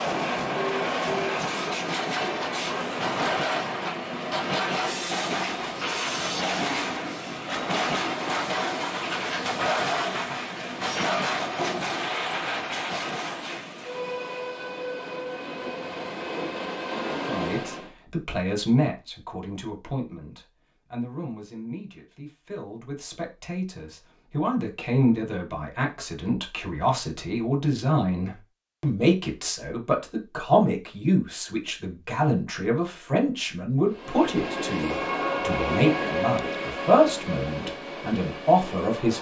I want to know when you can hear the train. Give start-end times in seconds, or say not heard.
0.0-17.9, 33.9-39.1.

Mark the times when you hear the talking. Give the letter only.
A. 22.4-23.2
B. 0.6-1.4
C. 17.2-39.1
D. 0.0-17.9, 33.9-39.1
C.